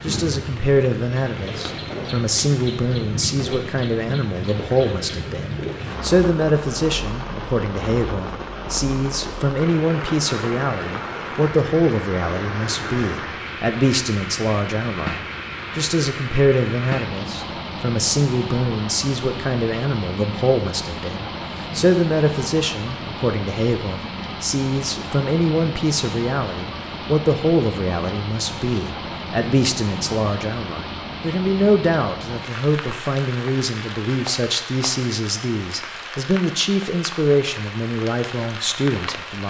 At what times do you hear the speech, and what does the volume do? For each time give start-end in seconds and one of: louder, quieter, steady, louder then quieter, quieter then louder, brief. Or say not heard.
0.0-39.4 steady.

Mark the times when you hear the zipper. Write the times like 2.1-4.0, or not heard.
not heard.